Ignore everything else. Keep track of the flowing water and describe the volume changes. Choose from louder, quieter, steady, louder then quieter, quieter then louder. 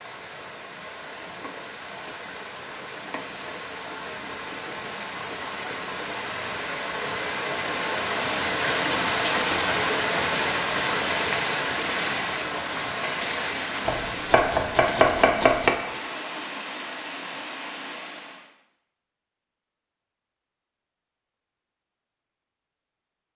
louder then quieter.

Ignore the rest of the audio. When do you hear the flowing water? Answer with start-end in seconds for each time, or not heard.
0.0-18.5.